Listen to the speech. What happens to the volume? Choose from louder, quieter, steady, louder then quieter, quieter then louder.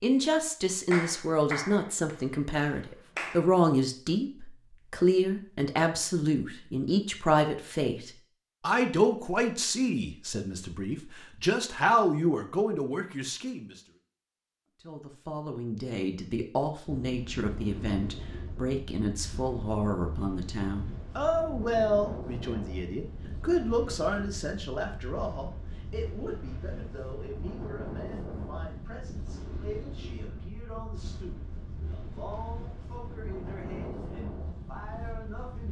quieter.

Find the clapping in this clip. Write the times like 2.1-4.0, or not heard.
0.9-3.5.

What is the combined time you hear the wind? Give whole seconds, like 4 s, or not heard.
19 s.